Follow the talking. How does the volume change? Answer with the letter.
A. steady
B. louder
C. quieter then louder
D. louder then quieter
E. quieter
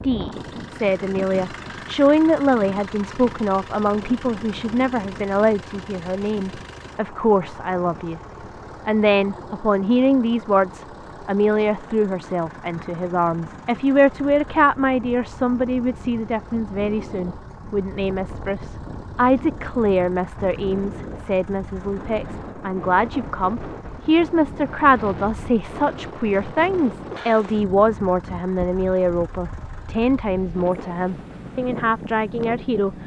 A.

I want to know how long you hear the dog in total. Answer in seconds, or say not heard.
not heard.